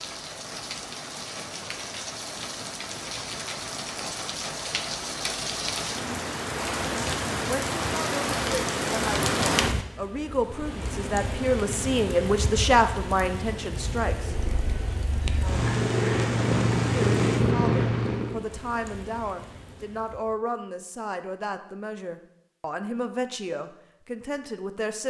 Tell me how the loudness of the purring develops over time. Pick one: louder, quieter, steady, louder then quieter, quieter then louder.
louder.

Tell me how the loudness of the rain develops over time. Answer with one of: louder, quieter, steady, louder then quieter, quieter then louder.
louder then quieter.